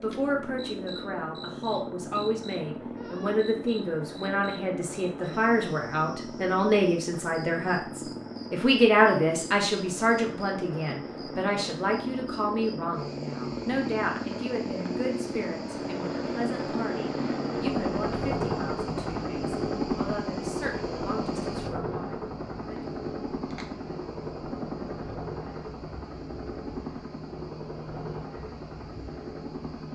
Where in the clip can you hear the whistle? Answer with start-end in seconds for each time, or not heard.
not heard.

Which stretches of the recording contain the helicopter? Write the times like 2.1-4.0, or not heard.
0.0-29.8.